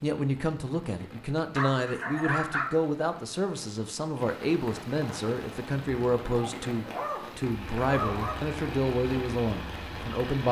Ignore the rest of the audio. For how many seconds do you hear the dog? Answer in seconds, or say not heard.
3 s.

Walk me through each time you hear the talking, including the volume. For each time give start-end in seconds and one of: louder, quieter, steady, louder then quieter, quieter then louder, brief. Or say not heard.
0.0-10.4 steady.